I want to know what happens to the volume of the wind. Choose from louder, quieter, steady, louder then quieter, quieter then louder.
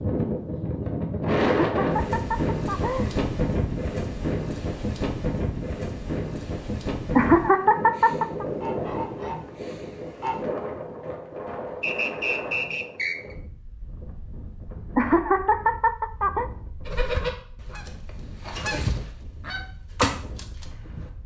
quieter.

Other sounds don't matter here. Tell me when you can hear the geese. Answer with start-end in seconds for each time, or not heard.
7.9-10.3, 16.9-21.1.